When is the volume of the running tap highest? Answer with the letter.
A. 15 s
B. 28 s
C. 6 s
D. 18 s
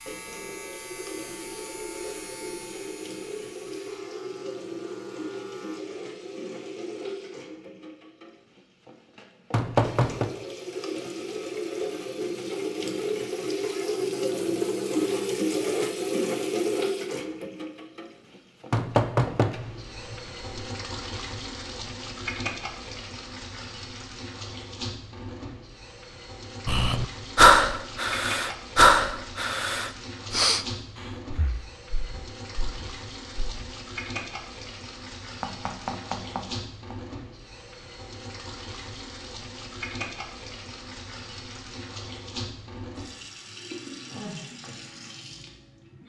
A.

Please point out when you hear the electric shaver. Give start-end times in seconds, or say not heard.
0.0-5.8.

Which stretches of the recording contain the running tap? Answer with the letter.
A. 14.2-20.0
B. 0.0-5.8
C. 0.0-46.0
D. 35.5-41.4
C.